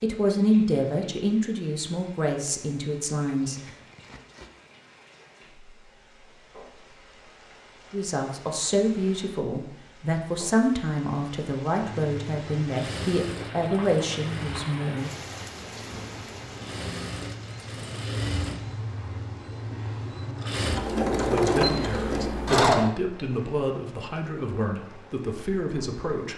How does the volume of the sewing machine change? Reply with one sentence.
The loudness of the sewing machine goes down, then up.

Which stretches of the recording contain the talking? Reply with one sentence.
You can hear the talking from 0.0 to 3.6 s, from 7.9 to 15.1 s and from 21.1 to 26.3 s.